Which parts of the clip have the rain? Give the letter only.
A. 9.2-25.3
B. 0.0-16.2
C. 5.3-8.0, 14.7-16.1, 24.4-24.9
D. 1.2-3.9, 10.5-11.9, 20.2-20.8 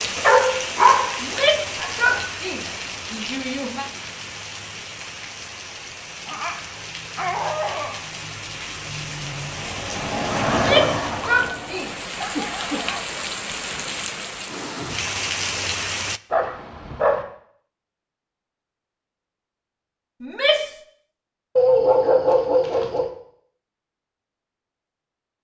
B.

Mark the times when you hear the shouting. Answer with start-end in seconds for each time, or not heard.
1.2-3.9, 10.5-11.9, 20.2-20.8.